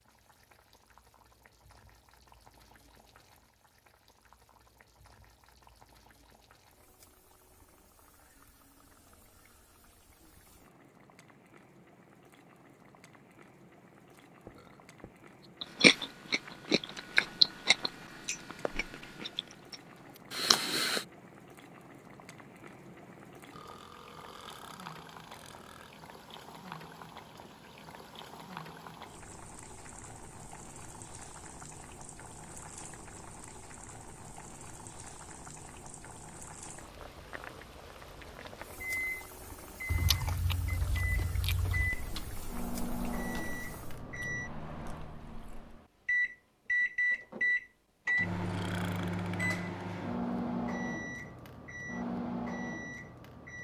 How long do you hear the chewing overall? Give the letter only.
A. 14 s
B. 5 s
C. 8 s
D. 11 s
D.